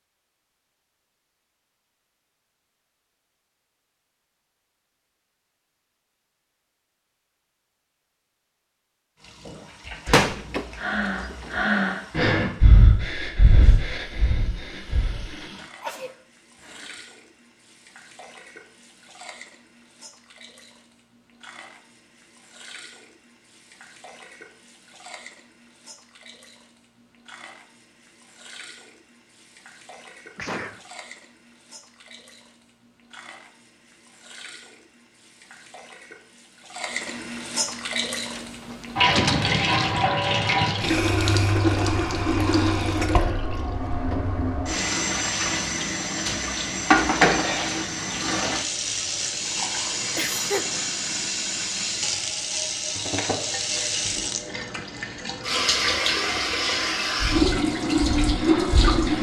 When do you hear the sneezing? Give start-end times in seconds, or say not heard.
15.6-17.1, 30.4-30.8, 50.1-50.6.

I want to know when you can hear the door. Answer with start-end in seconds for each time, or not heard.
9.8-11.7, 38.4-39.6.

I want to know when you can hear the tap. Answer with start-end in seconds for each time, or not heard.
9.2-59.1.